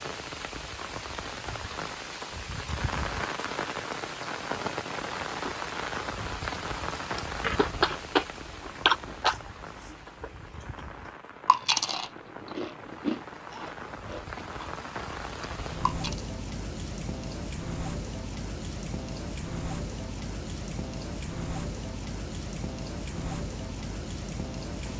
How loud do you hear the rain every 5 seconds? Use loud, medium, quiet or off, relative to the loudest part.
loud, loud, medium, loud, loud.